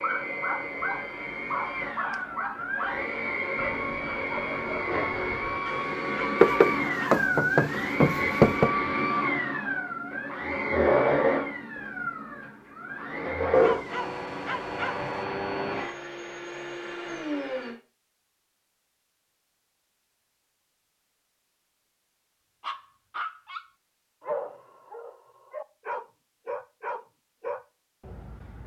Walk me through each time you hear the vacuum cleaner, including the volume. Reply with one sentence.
You can hear the vacuum cleaner from 0.0 to 17.8 s, getting louder then quieter.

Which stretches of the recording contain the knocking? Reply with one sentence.
You can hear the knocking from 6.4 to 8.7 s.